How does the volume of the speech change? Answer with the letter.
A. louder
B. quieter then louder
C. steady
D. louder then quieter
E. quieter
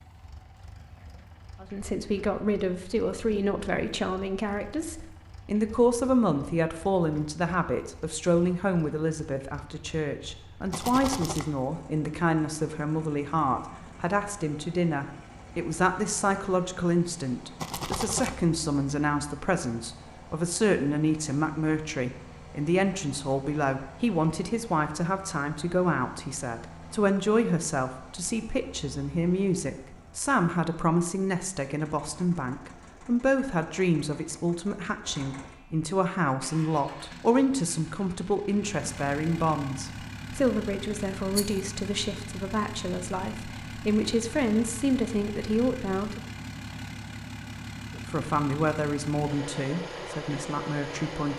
C.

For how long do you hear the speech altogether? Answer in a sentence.
The speech can be heard for 48 seconds in total.